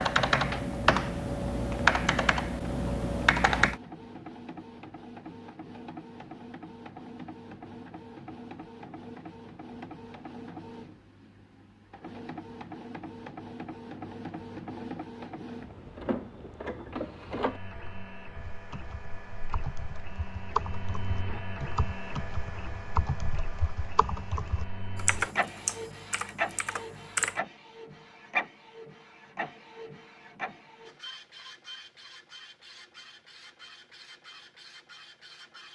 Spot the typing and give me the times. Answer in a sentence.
You can hear the typing from 0.0 to 3.8 s and from 18.4 to 27.4 s.